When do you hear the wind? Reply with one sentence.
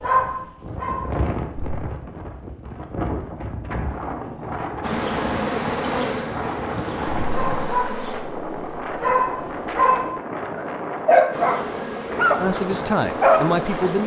The wind can be heard from 0.0 to 14.0 s.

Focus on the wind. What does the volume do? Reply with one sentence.
The loudness of the wind stays about the same.